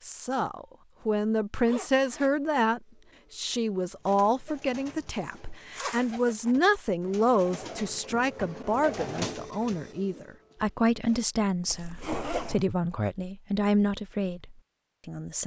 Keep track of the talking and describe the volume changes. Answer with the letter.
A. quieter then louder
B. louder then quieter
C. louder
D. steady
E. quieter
D.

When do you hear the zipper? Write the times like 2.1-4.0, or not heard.
1.6-2.3, 5.7-6.5, 11.7-12.7.